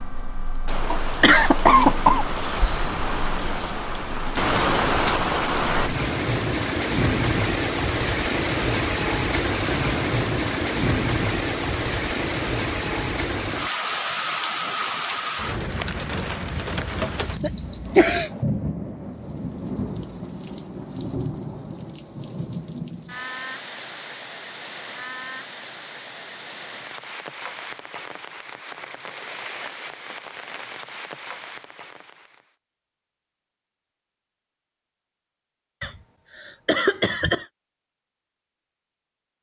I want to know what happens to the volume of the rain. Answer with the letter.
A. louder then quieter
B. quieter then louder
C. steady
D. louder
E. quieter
E.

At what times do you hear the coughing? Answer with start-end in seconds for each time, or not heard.
1.2-2.9, 17.2-18.3, 35.8-37.5.